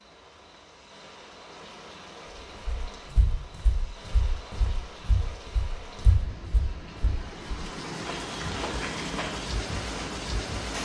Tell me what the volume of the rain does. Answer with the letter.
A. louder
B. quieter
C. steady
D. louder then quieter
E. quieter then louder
A.